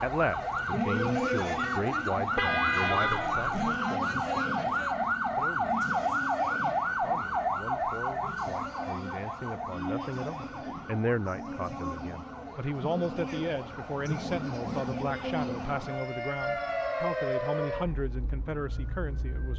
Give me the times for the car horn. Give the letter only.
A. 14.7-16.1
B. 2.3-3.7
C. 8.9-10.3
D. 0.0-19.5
B.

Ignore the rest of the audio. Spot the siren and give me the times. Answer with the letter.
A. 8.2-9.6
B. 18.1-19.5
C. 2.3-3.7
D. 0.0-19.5
D.